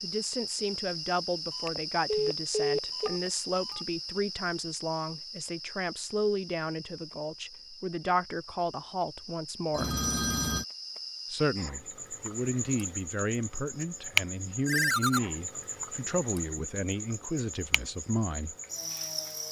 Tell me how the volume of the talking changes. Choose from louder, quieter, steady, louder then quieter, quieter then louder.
steady.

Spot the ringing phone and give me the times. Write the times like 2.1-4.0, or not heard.
1.6-3.8, 9.8-10.7, 14.7-15.2.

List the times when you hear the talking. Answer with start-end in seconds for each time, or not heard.
0.0-9.9, 11.3-18.6.